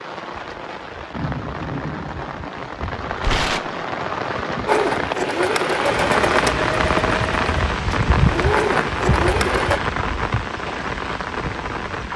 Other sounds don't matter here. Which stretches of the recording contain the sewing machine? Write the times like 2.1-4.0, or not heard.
4.7-9.8.